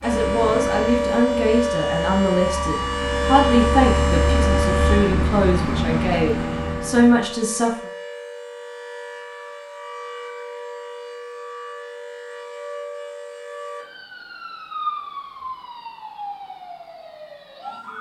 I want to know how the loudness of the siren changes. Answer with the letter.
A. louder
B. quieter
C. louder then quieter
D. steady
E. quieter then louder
B.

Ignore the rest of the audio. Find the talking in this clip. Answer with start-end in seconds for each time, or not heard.
0.0-7.8.